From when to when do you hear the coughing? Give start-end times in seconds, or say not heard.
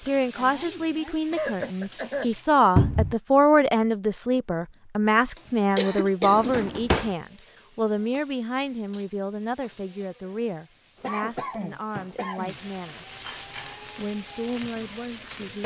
1.3-2.3, 5.8-6.5, 11.0-12.6.